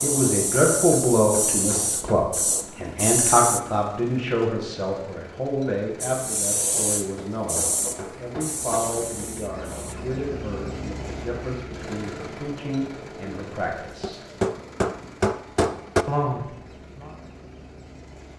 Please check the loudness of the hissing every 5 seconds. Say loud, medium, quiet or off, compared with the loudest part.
loud, loud, off, off.